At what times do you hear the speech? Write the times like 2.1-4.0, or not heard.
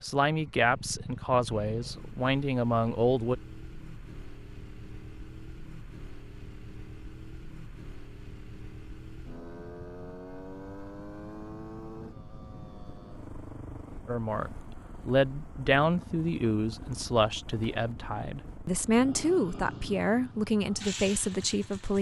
0.0-3.4, 14.1-21.9.